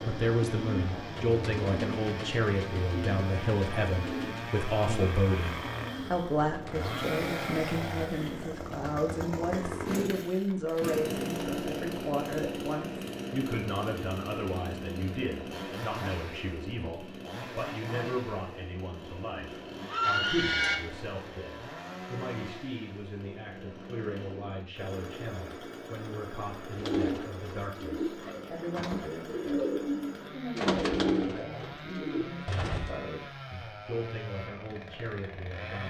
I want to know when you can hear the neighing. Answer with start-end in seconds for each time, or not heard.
19.9-20.8.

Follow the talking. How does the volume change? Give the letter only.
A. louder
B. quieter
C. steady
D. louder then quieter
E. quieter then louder
B.